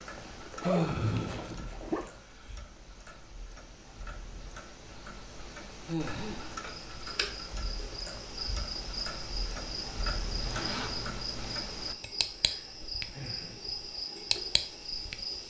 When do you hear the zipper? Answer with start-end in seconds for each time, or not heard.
0.1-2.1, 6.0-6.7, 10.4-11.7.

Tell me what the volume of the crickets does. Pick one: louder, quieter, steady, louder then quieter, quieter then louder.
steady.